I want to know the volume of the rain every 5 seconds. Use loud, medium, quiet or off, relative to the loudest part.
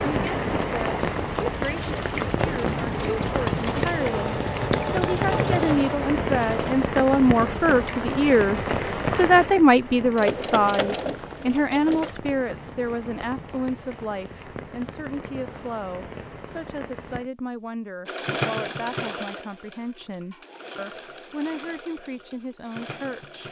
loud, loud, quiet, quiet, off.